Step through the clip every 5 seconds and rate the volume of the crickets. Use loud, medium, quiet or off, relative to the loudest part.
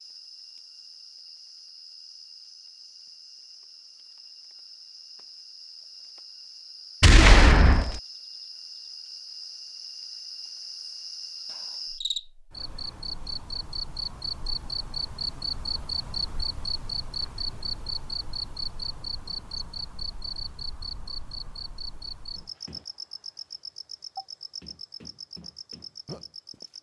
quiet, medium, loud, loud, medium, medium.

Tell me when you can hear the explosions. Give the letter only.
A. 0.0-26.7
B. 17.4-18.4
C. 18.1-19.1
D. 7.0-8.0
D.